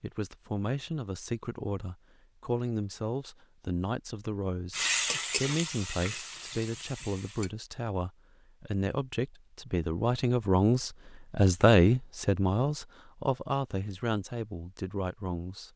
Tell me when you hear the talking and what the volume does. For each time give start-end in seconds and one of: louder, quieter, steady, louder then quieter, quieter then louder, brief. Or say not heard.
0.0-15.7 louder then quieter.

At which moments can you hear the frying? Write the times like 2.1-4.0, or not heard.
4.7-7.5.